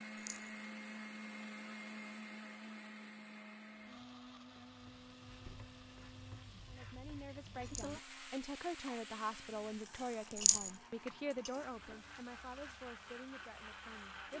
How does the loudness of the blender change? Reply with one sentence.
The loudness of the blender goes down, then up.